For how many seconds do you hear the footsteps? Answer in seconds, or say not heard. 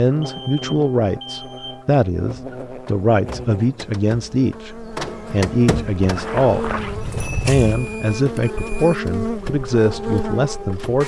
2 s.